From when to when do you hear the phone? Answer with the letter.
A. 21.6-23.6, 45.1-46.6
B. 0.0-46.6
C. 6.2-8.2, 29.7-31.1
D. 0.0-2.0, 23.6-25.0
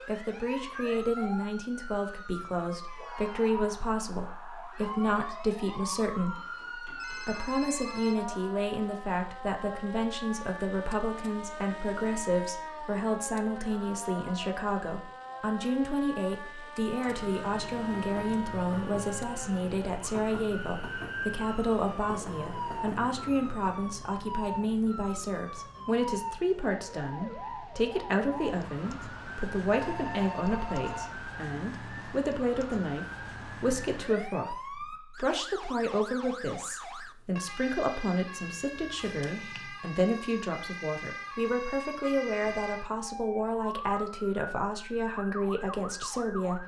C.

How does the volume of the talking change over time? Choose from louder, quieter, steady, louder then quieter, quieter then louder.
steady.